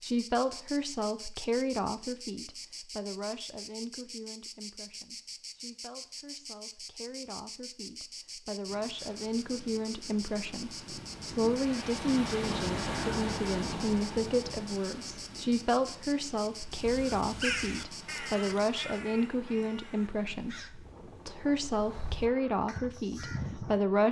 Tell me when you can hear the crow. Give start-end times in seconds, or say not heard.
16.7-23.8.